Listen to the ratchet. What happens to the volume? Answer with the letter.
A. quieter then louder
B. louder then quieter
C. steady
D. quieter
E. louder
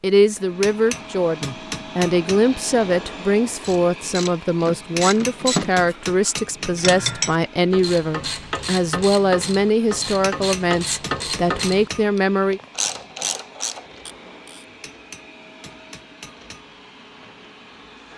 C.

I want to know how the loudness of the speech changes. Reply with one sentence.
The loudness of the speech stays about the same.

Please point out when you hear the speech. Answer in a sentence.
The speech can be heard from 0.0 to 12.6 s.